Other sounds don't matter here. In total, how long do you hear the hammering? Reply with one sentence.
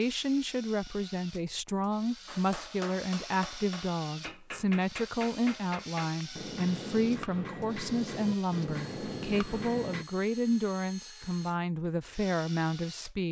You can hear the hammering for 8 seconds altogether.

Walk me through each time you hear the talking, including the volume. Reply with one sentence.
You can hear the talking from 0.0 to 13.2 s, at a steady volume.